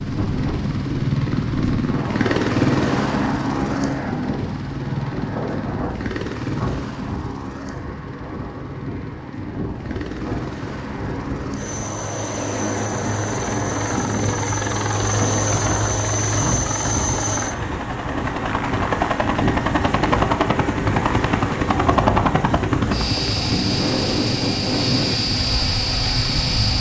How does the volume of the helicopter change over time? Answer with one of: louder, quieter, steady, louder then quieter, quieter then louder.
quieter then louder.